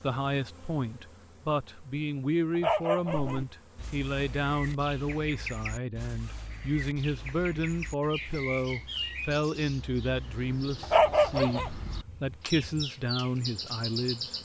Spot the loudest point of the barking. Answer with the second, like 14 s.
11 s.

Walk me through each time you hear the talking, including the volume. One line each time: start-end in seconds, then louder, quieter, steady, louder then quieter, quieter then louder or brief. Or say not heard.
0.0-14.3 steady.